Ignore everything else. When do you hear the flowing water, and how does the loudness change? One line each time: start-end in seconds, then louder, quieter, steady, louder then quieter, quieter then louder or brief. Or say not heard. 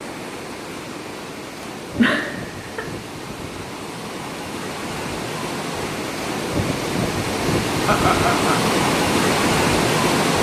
0.0-10.3 louder.